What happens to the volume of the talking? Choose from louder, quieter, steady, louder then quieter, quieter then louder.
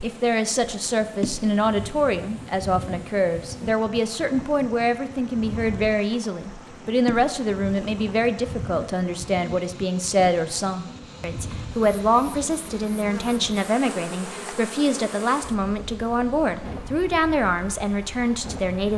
steady.